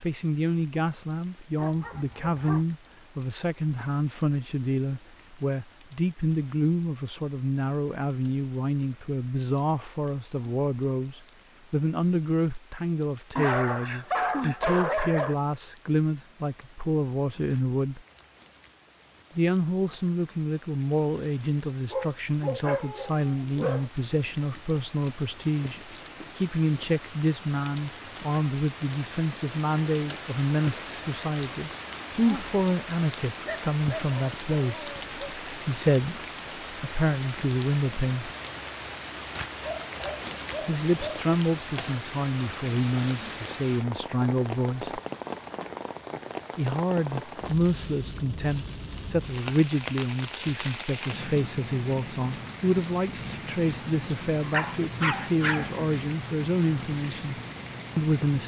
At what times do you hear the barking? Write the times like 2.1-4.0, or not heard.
1.6-2.6, 13.3-15.3, 21.9-23.9, 33.5-35.4, 39.6-41.2, 54.4-55.7.